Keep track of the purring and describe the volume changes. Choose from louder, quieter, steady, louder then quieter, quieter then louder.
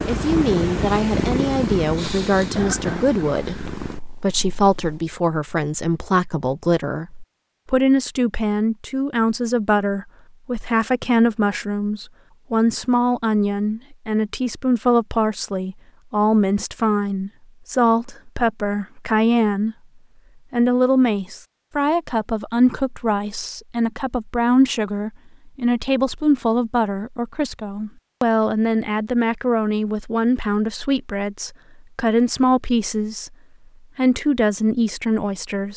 quieter.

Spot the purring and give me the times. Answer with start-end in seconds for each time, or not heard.
0.0-5.0.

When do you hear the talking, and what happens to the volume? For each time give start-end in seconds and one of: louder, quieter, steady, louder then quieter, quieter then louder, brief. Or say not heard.
0.1-19.8 steady
20.5-33.4 steady
34.0-35.7 brief.